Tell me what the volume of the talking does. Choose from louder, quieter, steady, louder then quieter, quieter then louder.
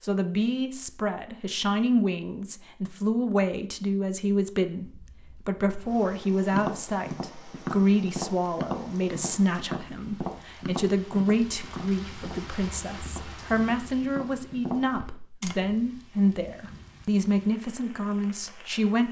steady.